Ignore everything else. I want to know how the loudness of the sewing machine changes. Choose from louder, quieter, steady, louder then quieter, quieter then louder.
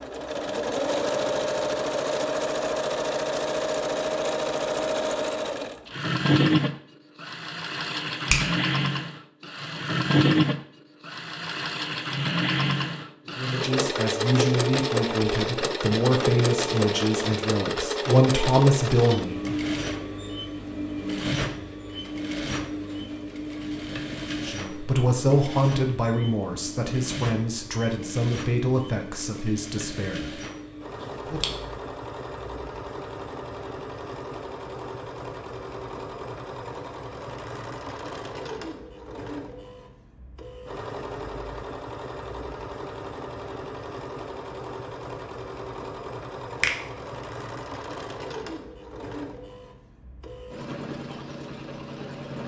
quieter.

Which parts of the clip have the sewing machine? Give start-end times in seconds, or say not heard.
0.0-52.4.